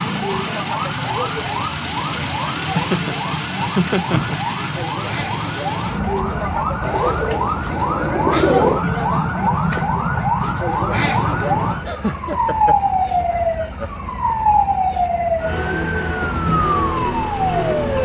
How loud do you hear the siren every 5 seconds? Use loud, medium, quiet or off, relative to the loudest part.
medium, loud, loud, loud.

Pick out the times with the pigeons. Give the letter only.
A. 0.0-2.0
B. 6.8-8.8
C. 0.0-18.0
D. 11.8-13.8
B.